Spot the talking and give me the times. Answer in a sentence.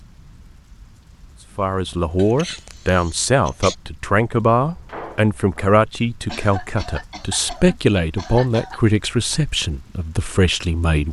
The talking can be heard from 1.6 to 11.0 s.